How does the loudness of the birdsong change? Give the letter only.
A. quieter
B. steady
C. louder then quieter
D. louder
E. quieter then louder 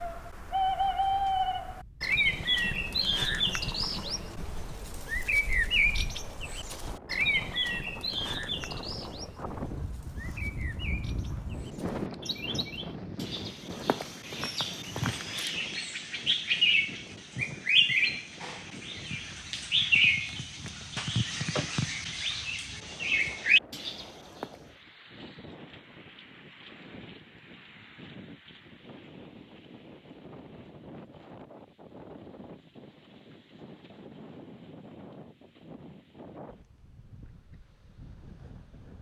E.